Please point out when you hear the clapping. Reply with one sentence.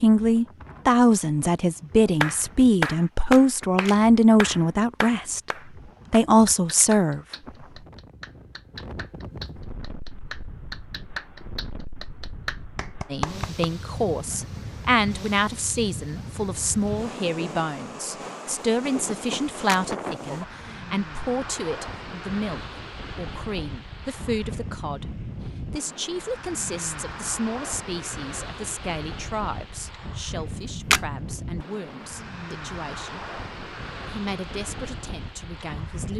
You can hear the clapping from 2.2 to 13.7 s.